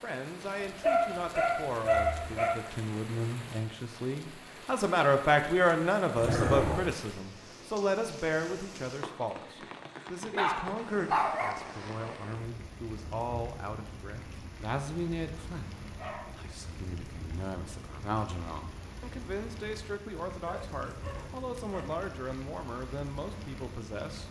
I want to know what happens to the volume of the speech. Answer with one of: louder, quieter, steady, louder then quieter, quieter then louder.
louder then quieter.